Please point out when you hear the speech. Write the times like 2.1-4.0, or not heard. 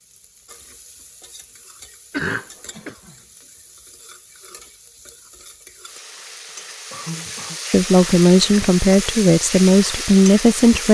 7.7-10.8.